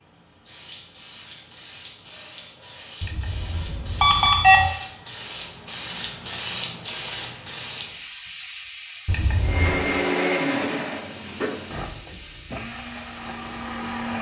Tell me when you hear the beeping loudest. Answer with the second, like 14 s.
4 s.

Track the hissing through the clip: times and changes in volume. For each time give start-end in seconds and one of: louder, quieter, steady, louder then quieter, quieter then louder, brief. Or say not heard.
0.0-14.1 louder then quieter.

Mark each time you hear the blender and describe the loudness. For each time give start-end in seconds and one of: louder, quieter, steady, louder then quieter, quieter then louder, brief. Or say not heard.
9.4-14.1 quieter.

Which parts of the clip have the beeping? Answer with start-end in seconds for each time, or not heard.
3.0-4.7, 9.1-9.8.